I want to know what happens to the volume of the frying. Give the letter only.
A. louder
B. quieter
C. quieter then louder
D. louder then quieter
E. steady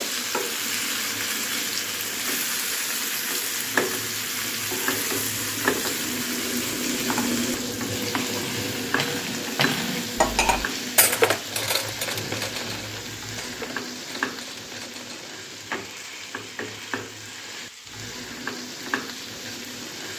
B.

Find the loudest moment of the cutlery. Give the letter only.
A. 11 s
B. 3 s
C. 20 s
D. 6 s
A.